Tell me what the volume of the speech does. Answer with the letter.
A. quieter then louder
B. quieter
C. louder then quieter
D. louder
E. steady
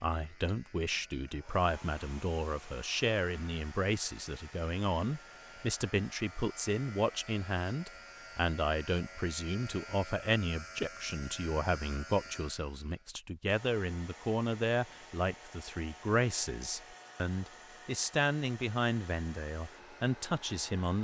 E.